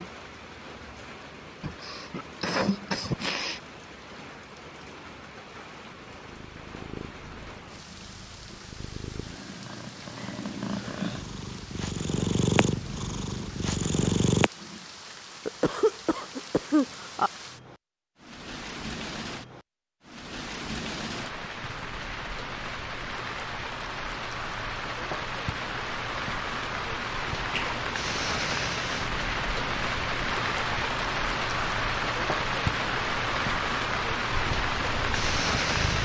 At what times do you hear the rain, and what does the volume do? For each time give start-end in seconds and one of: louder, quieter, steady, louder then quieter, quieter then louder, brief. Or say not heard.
0.0-36.0 louder.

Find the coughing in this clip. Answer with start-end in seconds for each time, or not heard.
1.6-3.6, 15.4-17.3, 27.5-28.2.